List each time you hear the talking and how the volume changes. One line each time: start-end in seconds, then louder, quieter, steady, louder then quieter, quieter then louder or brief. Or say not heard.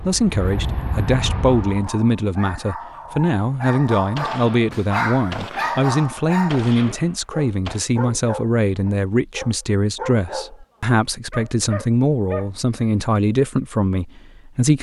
0.0-14.7 steady.